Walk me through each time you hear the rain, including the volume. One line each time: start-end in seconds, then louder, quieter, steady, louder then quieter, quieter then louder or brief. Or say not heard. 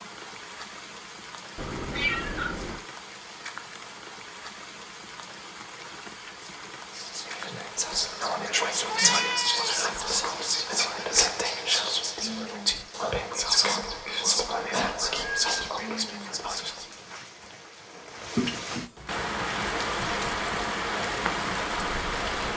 0.0-22.5 louder.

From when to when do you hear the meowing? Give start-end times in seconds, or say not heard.
1.6-2.8, 8.8-9.8, 15.0-15.8.